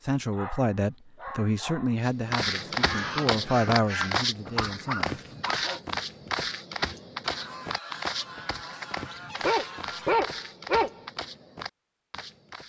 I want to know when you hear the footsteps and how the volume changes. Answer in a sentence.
The footsteps can be heard from 2.0 to 12.6 s, getting quieter.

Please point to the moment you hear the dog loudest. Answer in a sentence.
The loudest moment of the dog is at 10 seconds.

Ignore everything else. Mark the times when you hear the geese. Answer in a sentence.
You can hear the geese from 2.5 to 4.2 s and from 7.2 to 10.2 s.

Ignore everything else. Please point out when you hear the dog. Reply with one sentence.
You can hear the dog from 0.3 to 2.0 s, from 4.5 to 6.5 s and from 9.4 to 11.0 s.